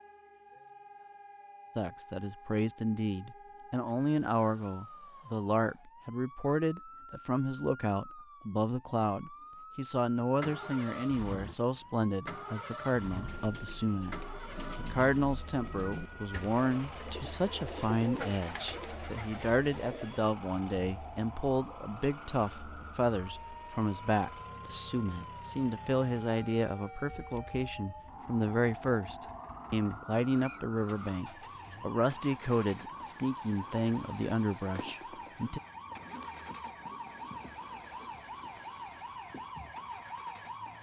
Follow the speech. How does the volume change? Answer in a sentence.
The loudness of the speech stays about the same.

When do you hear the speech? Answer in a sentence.
You can hear the speech from 1.8 to 35.6 s.